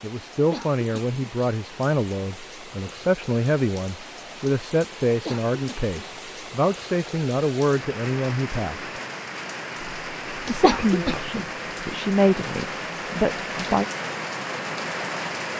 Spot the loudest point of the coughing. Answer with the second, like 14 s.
11 s.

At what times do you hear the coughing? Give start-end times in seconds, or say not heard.
0.5-1.2, 5.2-6.0, 10.6-11.4.